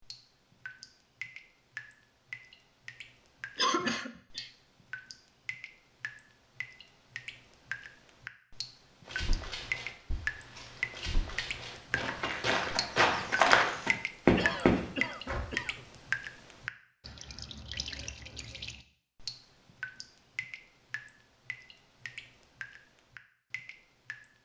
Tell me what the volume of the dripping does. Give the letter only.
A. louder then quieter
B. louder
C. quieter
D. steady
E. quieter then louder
A.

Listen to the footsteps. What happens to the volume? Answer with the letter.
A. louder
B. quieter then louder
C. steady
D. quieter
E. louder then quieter
A.